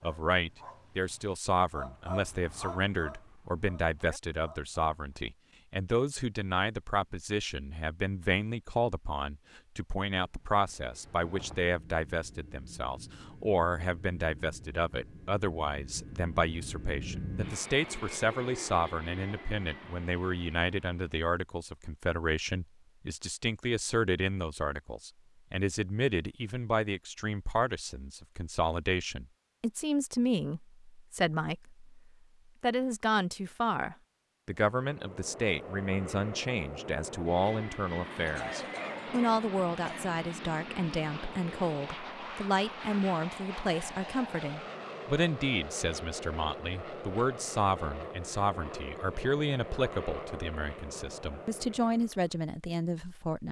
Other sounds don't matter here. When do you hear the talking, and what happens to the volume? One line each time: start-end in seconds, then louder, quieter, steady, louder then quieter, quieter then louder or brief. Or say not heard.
0.0-53.4 steady.